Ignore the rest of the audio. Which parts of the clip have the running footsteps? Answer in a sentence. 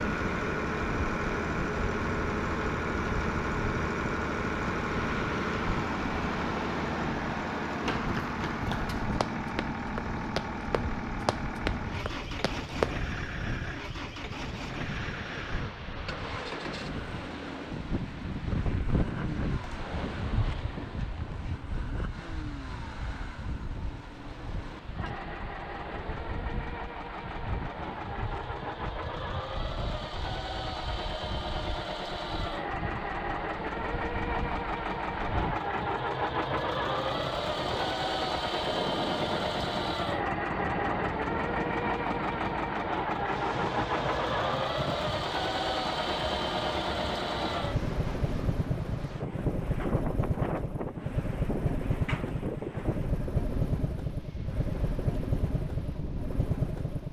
You can hear the running footsteps from 7.7 to 12.9 s.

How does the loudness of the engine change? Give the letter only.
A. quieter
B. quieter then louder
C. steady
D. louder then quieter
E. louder
B.